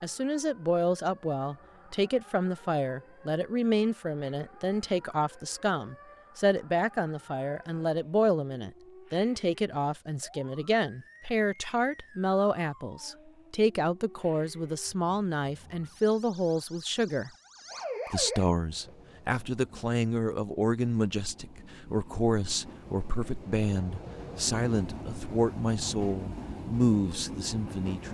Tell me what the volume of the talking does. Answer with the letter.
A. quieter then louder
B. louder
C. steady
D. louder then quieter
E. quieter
C.